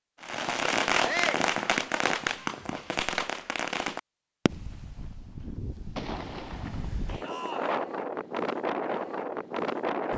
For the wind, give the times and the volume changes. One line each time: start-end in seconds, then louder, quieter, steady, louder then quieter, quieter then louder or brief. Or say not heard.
4.5-10.1 louder.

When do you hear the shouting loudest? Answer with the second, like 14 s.
1 s.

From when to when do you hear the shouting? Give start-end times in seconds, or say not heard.
1.0-1.5, 7.2-7.8.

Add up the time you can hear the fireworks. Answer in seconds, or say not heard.
6 s.